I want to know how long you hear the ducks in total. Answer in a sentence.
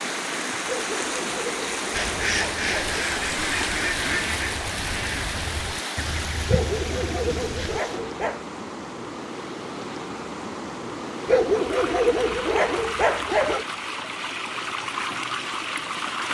The ducks can be heard for 6 seconds in total.